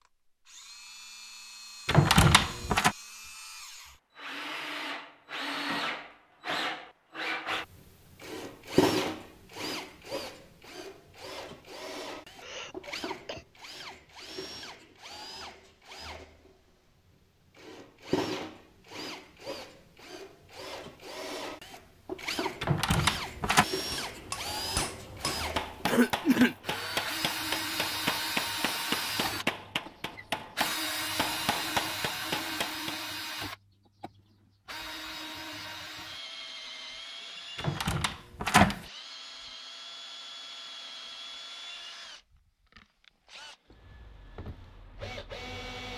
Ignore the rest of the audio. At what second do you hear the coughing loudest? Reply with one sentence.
The loudest moment of the coughing is at 26 seconds.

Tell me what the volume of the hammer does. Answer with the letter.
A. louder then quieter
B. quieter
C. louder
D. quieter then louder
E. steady
E.